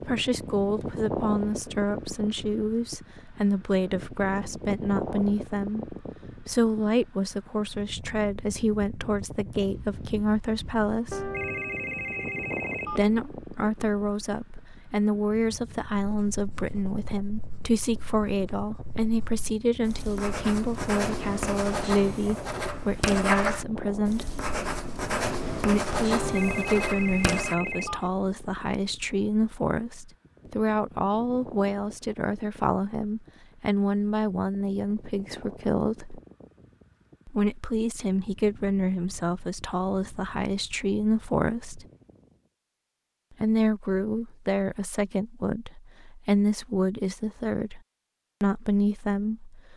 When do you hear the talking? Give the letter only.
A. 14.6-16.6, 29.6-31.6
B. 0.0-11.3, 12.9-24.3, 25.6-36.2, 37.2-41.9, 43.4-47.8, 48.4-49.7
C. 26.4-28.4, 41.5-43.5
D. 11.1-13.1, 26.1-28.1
B.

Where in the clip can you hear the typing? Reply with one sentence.
The typing can't be heard in this clip.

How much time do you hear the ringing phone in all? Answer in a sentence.
You can hear the ringing phone for 4 seconds altogether.